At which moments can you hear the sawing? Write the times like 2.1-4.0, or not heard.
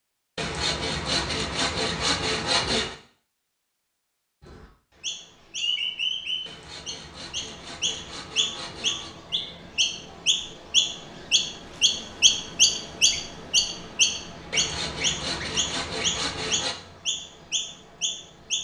0.3-3.0, 6.5-9.2, 14.5-16.8.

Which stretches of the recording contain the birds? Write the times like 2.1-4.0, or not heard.
4.4-18.5.